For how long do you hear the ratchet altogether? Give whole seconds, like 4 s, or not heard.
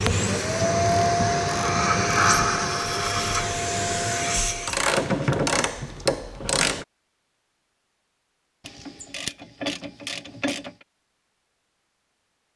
6 s.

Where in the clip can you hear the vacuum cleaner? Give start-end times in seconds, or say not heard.
0.0-4.8.